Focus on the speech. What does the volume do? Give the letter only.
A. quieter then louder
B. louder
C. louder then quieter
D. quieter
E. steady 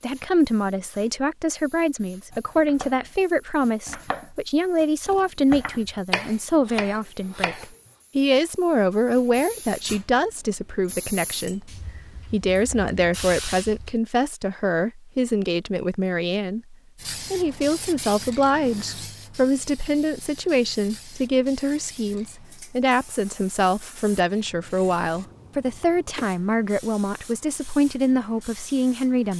E.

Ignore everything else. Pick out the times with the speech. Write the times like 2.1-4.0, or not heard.
0.0-29.3.